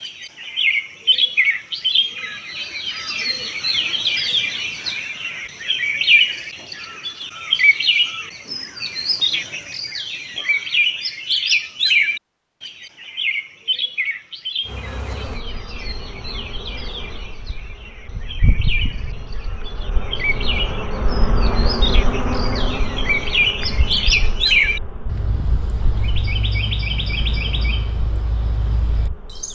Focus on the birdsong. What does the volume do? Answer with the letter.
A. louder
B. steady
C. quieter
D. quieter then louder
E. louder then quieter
D.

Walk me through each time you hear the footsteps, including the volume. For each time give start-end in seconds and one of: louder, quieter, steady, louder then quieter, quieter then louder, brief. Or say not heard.
not heard.